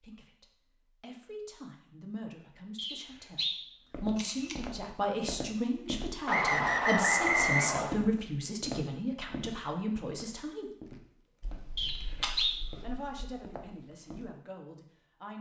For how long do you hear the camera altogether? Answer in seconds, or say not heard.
2 s.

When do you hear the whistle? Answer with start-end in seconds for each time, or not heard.
2.8-3.6, 6.2-8.0, 11.8-12.6.